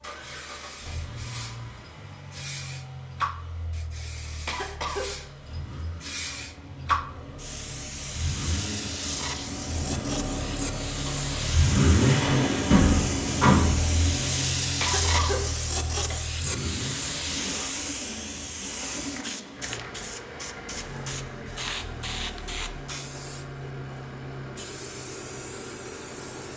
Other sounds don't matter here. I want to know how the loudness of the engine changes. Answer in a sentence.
The loudness of the engine goes up, then down.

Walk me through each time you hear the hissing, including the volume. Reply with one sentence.
You can hear the hissing from 0.0 to 26.5 s, getting louder then quieter.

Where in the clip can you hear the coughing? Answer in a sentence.
You can hear the coughing from 4.5 to 5.3 s and from 14.8 to 16.2 s.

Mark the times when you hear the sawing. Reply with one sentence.
The sawing can't be heard in this clip.